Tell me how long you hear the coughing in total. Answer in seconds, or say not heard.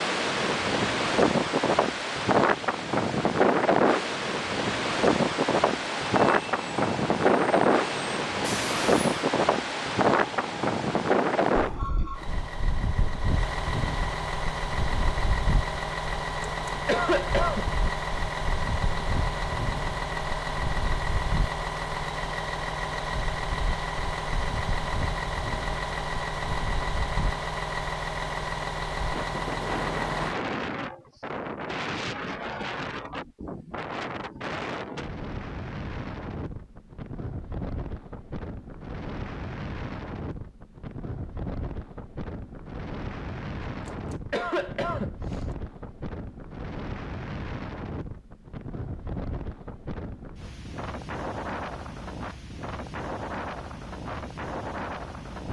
3 s.